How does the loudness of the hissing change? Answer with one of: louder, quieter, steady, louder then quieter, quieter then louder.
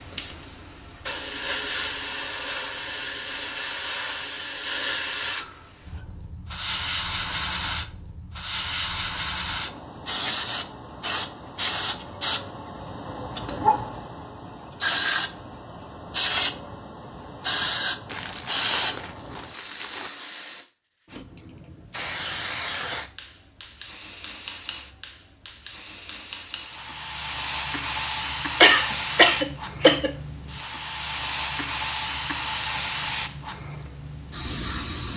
steady.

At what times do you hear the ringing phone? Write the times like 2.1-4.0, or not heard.
not heard.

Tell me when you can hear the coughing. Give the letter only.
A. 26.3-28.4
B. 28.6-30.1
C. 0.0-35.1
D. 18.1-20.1
B.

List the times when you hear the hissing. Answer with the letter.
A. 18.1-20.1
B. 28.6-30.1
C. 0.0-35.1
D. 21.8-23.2
C.